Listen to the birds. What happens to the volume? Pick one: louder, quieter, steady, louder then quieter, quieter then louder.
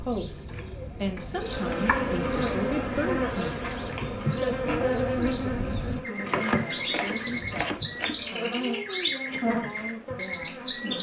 louder.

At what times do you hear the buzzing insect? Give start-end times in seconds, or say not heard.
1.3-10.9.